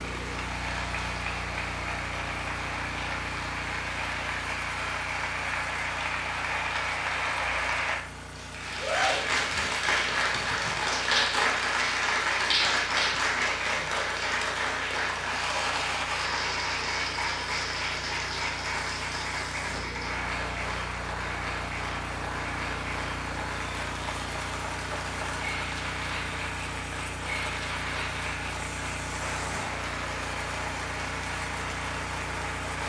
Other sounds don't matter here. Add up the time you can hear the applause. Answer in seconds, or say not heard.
33 s.